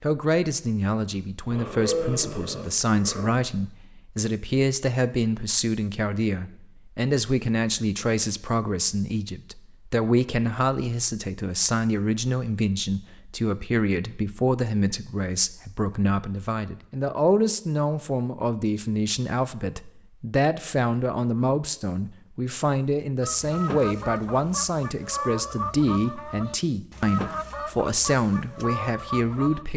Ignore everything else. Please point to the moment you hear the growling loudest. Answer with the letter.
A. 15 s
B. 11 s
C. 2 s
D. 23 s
C.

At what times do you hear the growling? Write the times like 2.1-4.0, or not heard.
1.5-3.3.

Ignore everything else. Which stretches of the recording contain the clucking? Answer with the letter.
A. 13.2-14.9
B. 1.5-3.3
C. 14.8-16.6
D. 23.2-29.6
D.